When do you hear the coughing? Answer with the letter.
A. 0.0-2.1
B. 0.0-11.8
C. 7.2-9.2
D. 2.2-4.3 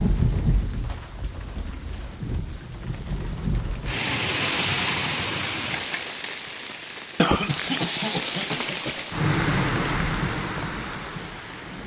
C.